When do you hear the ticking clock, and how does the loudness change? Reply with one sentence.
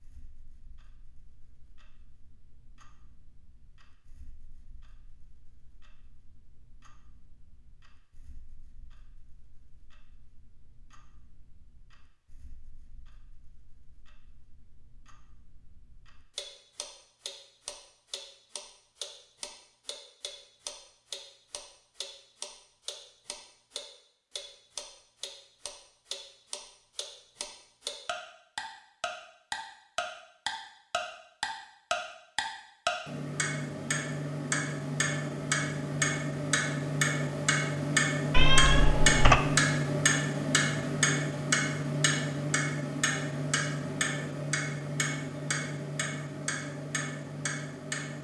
The ticking clock can be heard from 0.0 to 48.1 s, getting louder.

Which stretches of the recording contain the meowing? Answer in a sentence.
You can hear the meowing from 38.3 to 39.4 s.